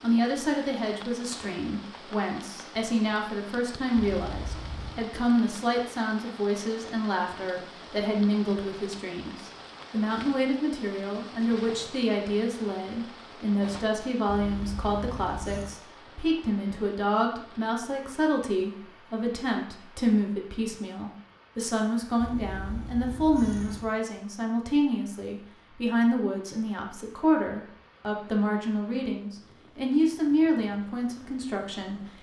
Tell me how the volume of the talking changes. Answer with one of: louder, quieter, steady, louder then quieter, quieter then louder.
steady.